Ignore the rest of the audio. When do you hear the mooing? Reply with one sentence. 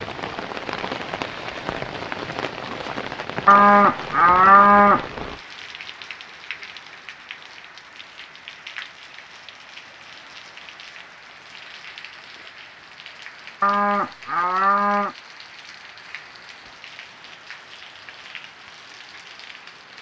The mooing can be heard from 3.5 to 5.0 s and from 13.6 to 15.2 s.